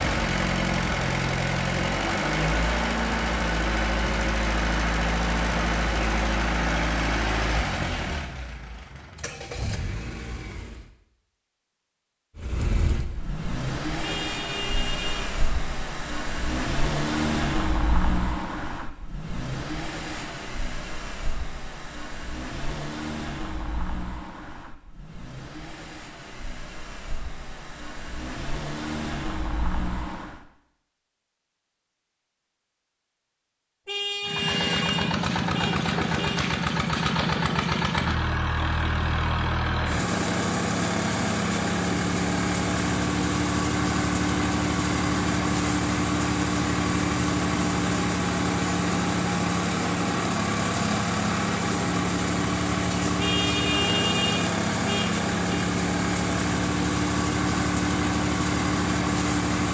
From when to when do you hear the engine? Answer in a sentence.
You can hear the engine from 0.0 to 10.9 s, from 12.3 to 30.4 s and from 34.2 to 59.6 s.